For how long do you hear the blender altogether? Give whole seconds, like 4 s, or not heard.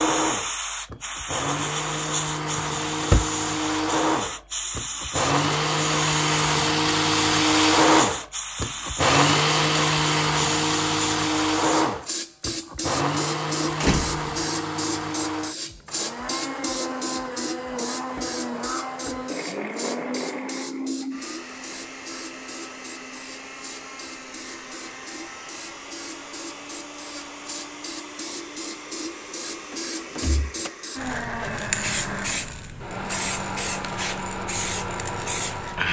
36 s.